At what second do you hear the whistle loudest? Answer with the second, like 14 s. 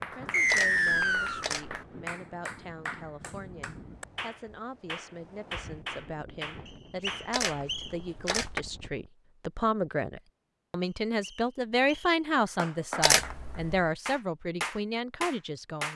1 s.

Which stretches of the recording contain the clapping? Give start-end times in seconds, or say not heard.
0.0-8.7, 12.4-15.9.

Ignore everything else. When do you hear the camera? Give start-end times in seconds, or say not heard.
0.5-1.9, 7.3-8.7, 13.0-13.8.